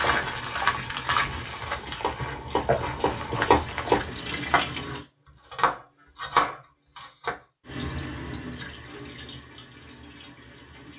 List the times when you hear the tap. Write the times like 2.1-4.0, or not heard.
0.1-5.0, 7.7-10.9.